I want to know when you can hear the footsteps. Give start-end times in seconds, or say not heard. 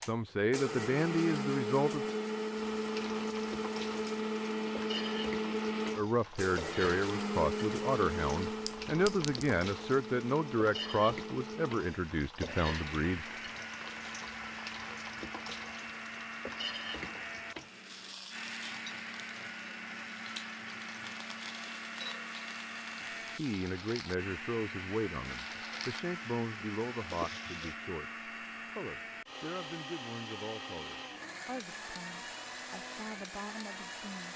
not heard.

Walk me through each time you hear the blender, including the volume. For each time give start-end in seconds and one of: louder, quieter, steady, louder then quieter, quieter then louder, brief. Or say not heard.
0.0-34.3 quieter.